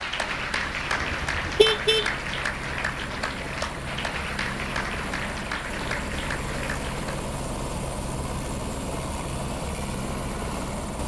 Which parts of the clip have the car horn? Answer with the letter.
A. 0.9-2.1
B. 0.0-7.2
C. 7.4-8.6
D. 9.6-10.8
A.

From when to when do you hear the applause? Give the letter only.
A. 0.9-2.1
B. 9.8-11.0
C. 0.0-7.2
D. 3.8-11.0
C.